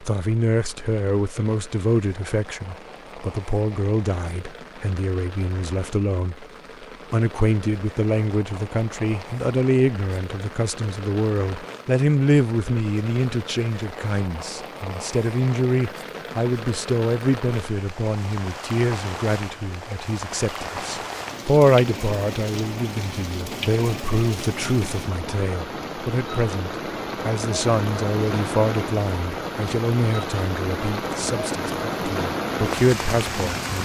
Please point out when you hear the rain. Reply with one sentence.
The rain can be heard from 0.0 to 33.8 s.